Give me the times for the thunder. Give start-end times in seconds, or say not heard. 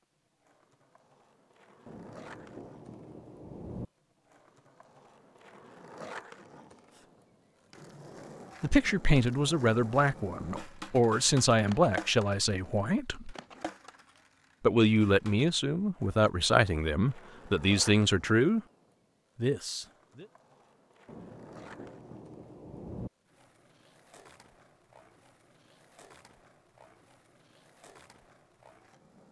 1.9-3.9, 21.1-23.1.